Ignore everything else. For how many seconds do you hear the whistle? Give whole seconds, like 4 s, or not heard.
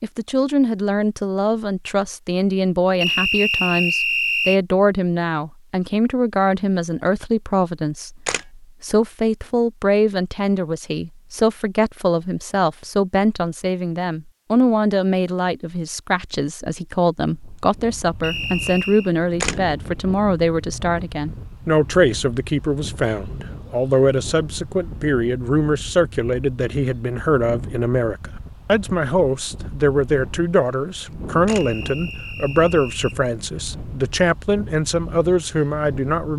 4 s.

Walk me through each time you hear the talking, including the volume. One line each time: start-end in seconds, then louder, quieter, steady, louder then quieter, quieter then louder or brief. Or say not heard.
0.0-36.3 steady.